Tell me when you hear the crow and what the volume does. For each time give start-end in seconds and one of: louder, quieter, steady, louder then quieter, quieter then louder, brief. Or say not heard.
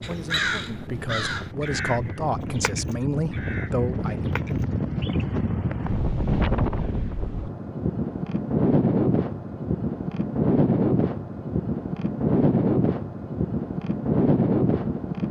0.0-5.2 quieter.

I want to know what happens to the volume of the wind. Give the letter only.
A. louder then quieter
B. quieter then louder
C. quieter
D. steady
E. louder
E.